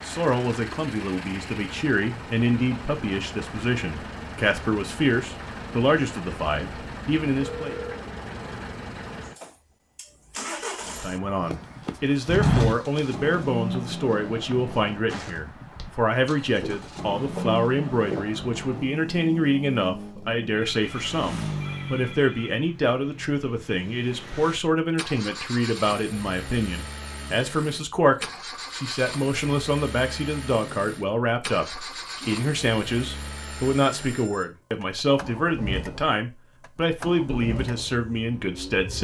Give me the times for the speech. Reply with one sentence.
The speech can be heard from 0.0 to 7.8 s and from 10.8 to 38.9 s.